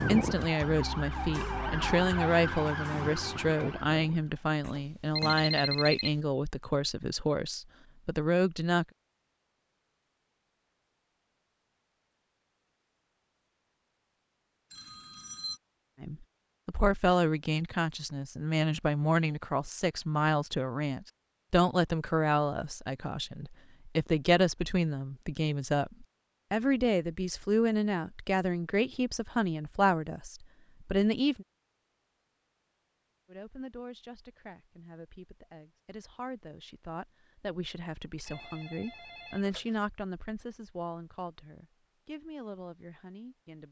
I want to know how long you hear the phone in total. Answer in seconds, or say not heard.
4 s.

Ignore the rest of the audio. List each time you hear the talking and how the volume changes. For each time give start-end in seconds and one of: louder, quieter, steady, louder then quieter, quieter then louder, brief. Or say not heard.
0.0-8.8 steady
16.0-31.4 steady
33.2-43.6 louder then quieter.